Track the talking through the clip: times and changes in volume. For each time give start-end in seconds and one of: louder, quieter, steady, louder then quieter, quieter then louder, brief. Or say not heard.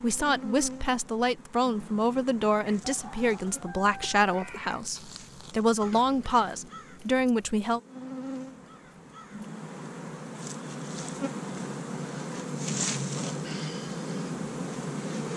0.0-7.8 steady.